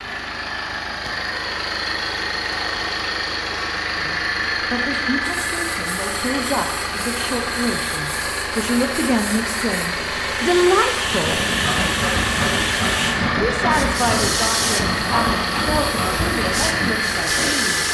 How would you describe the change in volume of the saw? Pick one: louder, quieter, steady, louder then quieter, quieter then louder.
steady.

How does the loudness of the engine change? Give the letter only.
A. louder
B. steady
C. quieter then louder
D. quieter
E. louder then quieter
B.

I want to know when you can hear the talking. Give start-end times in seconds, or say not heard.
4.0-11.4, 13.4-17.8.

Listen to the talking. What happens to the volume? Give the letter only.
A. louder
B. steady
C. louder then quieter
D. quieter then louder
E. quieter
C.